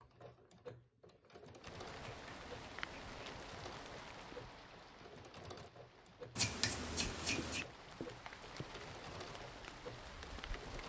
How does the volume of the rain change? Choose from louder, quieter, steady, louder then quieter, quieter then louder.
quieter then louder.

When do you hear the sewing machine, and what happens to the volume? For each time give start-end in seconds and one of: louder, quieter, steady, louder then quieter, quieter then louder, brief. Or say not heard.
0.0-10.8 steady.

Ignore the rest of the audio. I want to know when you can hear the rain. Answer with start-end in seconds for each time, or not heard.
1.6-10.8.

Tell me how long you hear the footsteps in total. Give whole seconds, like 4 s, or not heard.
not heard.